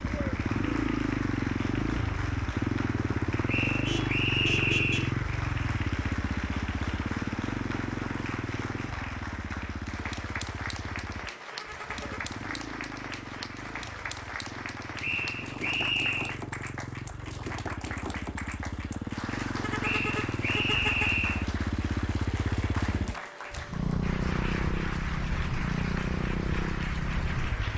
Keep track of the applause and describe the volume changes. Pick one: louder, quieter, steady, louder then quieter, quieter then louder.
steady.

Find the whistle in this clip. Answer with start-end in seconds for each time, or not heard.
3.5-5.1, 15.0-16.4, 19.8-21.4.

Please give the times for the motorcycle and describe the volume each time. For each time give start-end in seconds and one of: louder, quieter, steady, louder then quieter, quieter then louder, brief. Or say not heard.
0.0-27.7 quieter then louder.